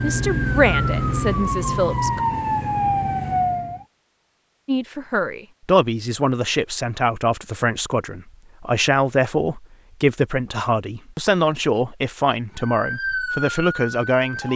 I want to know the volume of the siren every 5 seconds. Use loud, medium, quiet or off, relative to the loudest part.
loud, off, medium.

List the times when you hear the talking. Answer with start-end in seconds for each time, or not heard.
0.0-2.2, 4.7-14.5.